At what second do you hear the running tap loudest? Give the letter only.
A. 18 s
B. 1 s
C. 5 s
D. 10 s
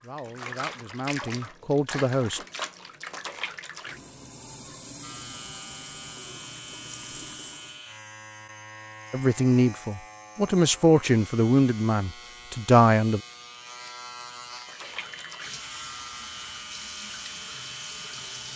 B.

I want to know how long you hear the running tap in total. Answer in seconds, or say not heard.
12 s.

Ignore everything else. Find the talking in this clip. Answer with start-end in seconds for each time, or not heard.
0.0-2.4, 9.1-13.2.